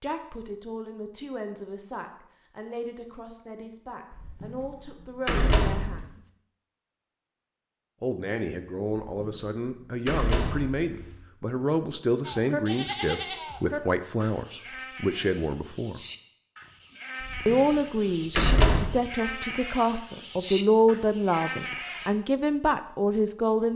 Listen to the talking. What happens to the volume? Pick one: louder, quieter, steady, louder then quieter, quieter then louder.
louder.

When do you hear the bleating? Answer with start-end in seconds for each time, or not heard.
12.2-22.1.